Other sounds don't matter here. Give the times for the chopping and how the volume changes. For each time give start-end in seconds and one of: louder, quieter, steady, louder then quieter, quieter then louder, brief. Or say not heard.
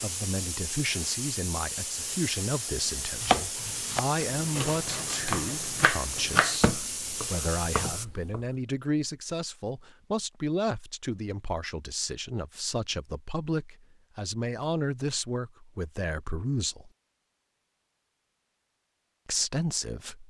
3.2-8.4 louder then quieter.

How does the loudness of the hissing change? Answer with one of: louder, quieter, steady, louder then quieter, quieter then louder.
steady.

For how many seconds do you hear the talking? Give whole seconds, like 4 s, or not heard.
18 s.